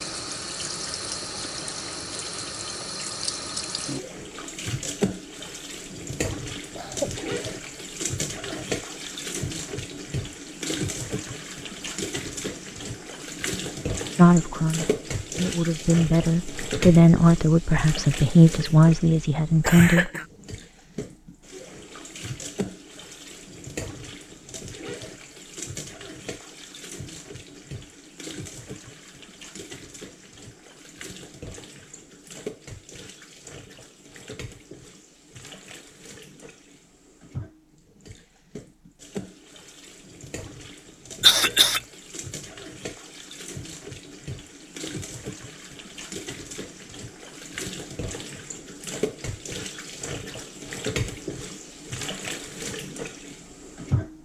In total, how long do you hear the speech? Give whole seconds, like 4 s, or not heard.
6 s.